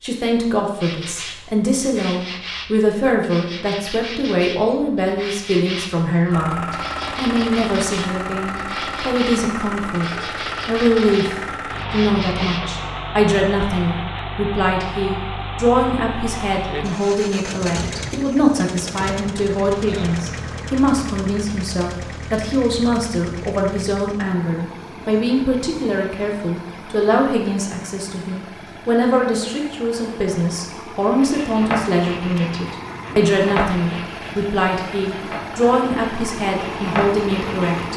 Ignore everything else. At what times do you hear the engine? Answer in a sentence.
The engine can be heard from 6.3 to 37.9 s.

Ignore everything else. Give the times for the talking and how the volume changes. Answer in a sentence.
The talking can be heard from 0.0 to 37.9 s, at a steady volume.